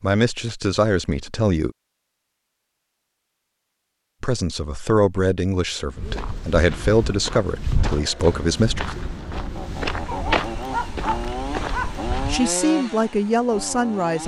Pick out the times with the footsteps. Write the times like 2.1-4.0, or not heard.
5.9-12.5.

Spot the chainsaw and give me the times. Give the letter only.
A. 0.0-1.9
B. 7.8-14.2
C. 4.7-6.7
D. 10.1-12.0
B.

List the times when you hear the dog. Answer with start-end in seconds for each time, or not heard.
10.1-12.0.